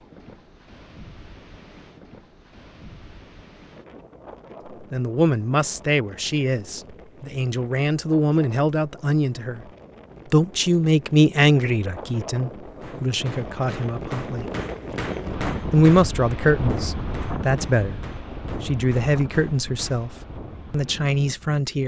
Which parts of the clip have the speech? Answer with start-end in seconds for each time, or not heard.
4.9-9.6, 10.3-14.4, 15.7-20.1, 20.7-21.8.